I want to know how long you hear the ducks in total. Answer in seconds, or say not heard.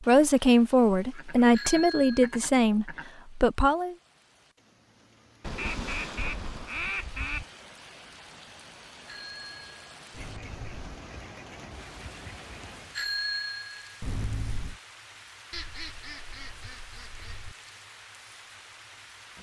9 s.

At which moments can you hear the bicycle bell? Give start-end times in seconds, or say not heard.
1.5-2.4, 9.1-11.0, 12.9-14.8.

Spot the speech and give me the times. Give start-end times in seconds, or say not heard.
0.0-4.0.